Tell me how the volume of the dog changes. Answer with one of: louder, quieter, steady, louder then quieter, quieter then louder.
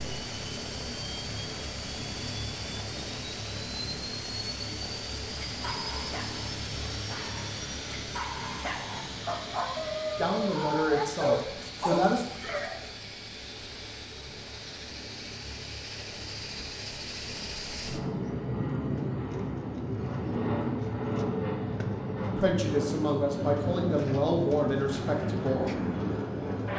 louder.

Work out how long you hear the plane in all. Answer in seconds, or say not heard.
27 s.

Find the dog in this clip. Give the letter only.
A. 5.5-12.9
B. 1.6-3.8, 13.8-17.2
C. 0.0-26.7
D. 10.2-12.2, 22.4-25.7
A.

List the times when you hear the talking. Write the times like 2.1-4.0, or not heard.
10.2-12.2, 22.4-25.7.